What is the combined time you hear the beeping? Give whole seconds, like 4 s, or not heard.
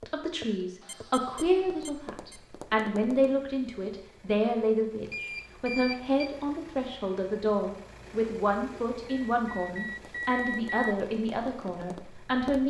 5 s.